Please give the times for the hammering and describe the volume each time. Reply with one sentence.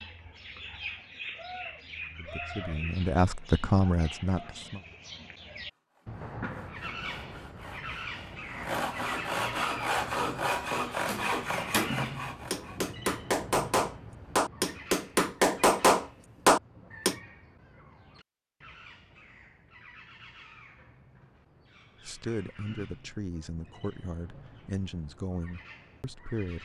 You can hear the hammering from 11.1 to 17.1 s, getting louder.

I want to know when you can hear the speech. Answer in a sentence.
The speech can be heard from 2.1 to 4.8 s and from 22.1 to 26.5 s.